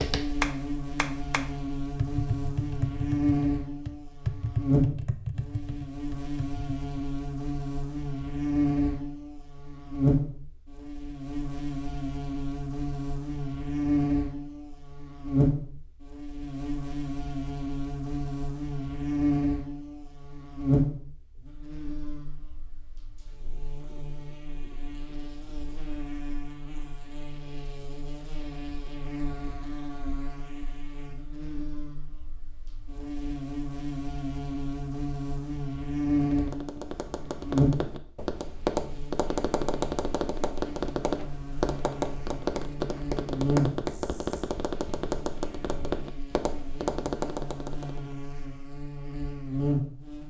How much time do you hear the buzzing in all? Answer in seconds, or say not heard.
50 s.